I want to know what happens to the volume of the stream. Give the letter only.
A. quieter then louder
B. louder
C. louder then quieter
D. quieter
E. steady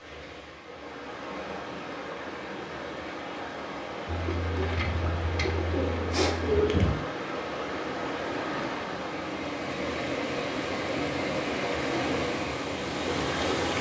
B.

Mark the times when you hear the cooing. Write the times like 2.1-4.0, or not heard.
4.0-7.0.